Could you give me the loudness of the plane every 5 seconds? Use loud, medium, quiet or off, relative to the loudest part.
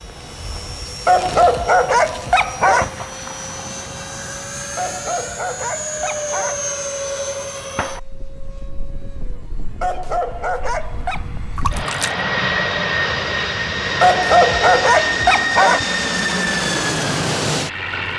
medium, medium, loud, loud.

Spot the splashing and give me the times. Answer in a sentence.
You can hear the splashing from 11.6 to 12.2 s.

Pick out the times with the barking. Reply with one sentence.
The barking can be heard from 1.1 to 2.9 s, from 4.8 to 6.6 s, from 9.8 to 11.2 s and from 14.0 to 15.8 s.